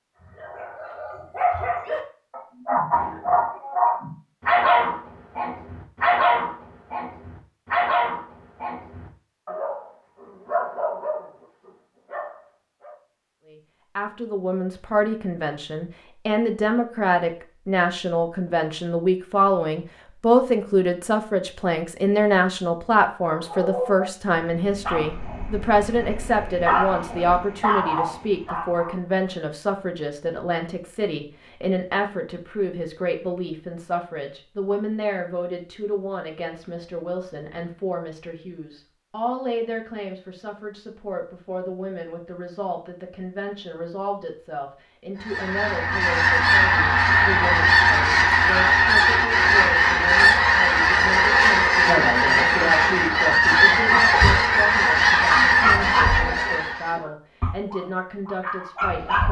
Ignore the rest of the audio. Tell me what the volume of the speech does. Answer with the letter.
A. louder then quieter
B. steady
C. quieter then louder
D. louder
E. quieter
E.